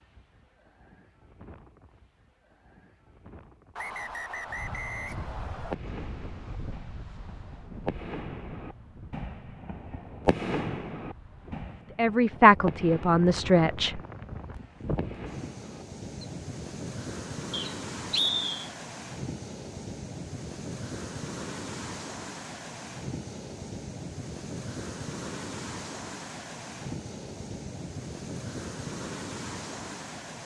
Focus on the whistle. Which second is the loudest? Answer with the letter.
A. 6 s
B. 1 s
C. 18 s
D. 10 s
C.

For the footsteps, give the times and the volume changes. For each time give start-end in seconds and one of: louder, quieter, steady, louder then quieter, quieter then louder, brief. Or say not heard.
not heard.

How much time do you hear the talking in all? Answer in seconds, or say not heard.
2 s.